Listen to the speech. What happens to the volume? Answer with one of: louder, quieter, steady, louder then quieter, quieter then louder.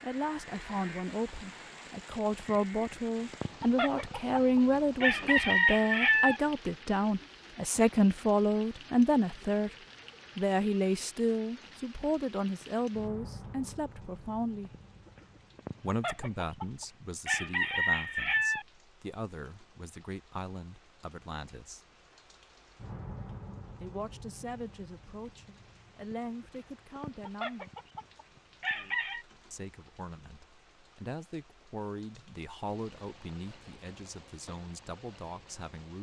quieter.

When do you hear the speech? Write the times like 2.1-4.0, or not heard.
0.0-9.7, 10.3-14.7, 15.8-21.8, 23.8-27.7, 29.5-35.9.